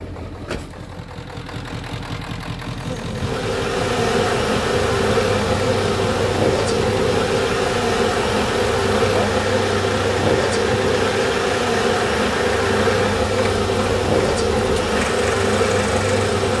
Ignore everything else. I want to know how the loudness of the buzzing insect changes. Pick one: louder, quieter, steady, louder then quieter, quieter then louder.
steady.